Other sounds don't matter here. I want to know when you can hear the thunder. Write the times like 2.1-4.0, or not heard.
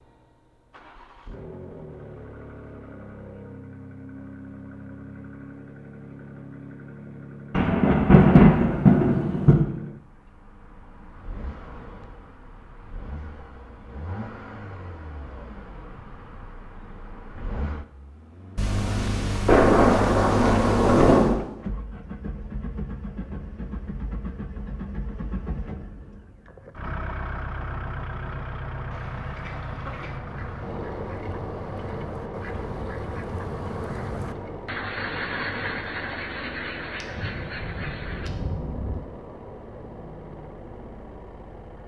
7.5-9.6, 18.6-21.4, 37.0-39.0.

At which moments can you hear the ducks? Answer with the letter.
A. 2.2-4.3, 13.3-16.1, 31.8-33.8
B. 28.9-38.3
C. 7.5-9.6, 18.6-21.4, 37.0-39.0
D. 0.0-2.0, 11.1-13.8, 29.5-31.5
B.